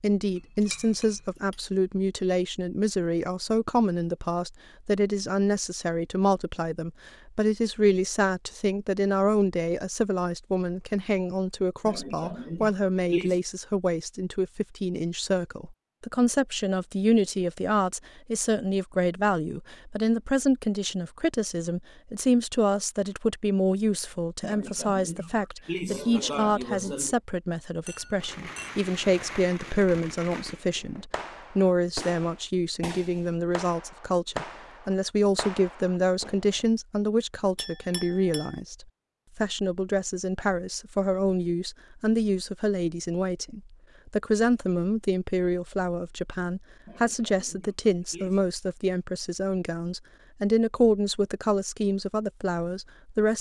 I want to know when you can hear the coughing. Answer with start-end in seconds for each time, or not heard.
11.8-13.4, 24.4-27.1, 46.9-48.5.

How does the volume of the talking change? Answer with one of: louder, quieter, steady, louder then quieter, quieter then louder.
steady.